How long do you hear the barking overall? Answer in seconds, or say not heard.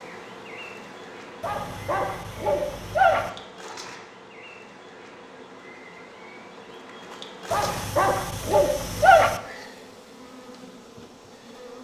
4 s.